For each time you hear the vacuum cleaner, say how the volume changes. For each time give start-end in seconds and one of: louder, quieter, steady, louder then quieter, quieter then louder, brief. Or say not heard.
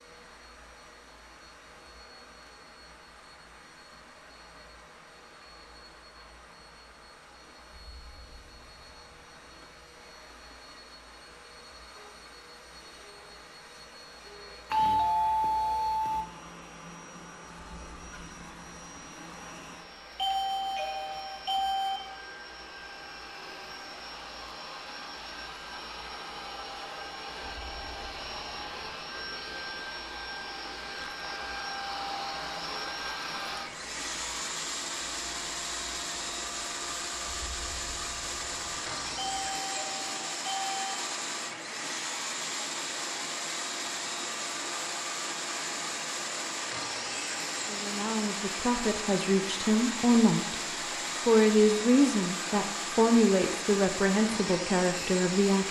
0.0-55.6 louder.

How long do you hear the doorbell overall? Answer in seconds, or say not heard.
5 s.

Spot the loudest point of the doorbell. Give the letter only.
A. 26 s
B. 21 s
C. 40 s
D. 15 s
D.